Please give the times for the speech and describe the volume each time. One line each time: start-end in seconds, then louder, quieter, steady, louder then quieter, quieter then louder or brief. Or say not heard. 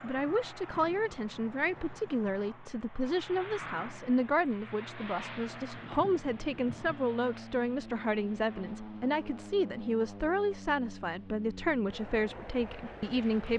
0.0-13.5 steady.